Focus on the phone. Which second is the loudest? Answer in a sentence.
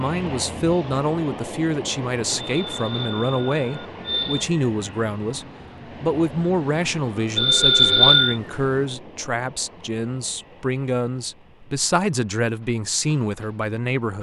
The volume of the phone peaks at 8 seconds.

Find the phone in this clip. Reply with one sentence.
You can hear the phone from 2.5 to 4.5 s and from 7.3 to 8.3 s.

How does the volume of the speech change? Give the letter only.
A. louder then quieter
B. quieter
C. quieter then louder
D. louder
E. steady
E.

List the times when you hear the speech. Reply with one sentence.
The speech can be heard from 0.0 to 14.1 s.